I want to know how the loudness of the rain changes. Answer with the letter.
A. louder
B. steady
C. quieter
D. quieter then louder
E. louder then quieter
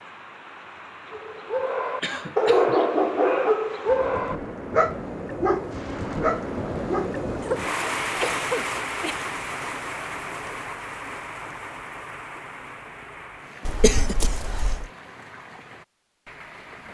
E.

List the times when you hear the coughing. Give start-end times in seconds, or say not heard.
1.6-2.8, 7.4-9.2, 13.7-14.8.